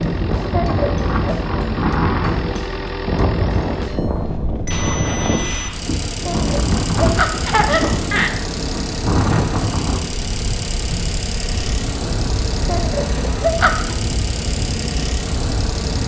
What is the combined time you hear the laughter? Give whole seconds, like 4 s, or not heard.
4 s.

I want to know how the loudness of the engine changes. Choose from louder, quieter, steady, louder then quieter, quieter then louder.
steady.